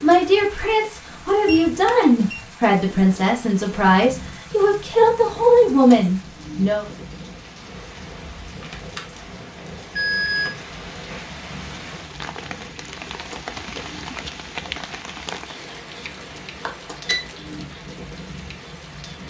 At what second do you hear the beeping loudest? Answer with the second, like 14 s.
10 s.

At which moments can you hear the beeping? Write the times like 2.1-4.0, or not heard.
1.4-2.4, 8.6-10.6, 16.6-17.2.